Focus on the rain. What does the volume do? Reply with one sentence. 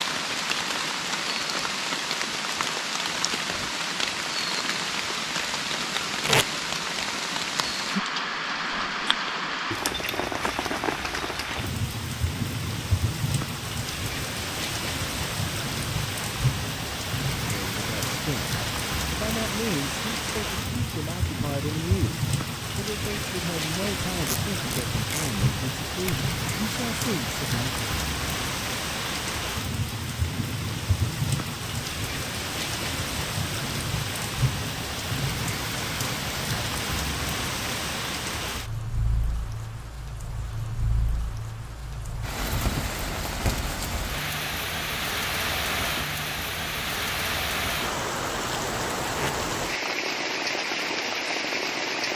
The volume of the rain stays about the same.